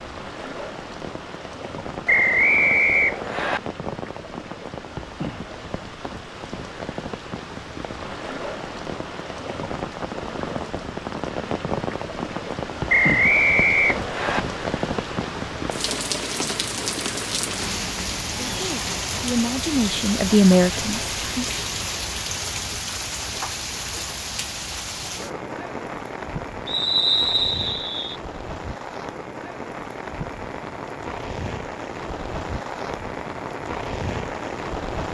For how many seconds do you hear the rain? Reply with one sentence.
The rain can be heard for 35 seconds in total.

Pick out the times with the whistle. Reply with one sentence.
You can hear the whistle from 2.0 to 3.6 s, from 12.8 to 14.4 s and from 26.6 to 28.1 s.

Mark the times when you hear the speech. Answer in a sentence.
The speech can be heard from 18.4 to 21.4 s.